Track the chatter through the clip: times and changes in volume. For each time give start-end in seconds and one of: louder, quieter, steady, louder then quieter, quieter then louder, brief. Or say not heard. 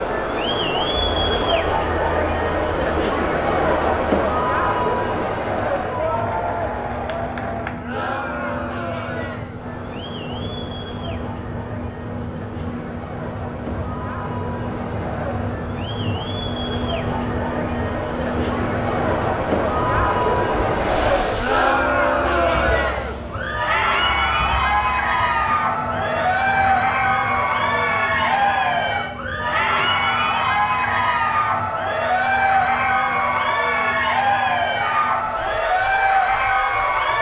0.0-37.1 quieter then louder.